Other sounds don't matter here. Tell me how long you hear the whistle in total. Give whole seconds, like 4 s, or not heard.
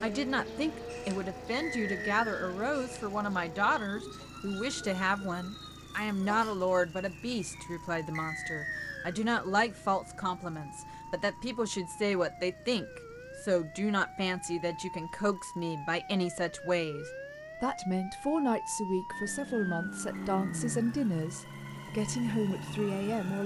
3 s.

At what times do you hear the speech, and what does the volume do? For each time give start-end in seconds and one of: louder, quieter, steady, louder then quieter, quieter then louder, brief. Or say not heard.
0.0-23.4 steady.